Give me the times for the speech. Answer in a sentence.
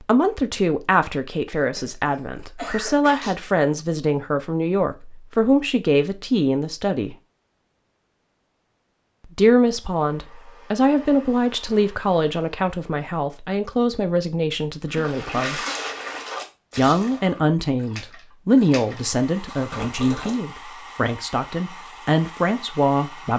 You can hear the speech from 0.0 to 7.2 s, from 9.3 to 15.6 s and from 16.8 to 23.3 s.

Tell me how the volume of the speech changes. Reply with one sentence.
The volume of the speech stays about the same.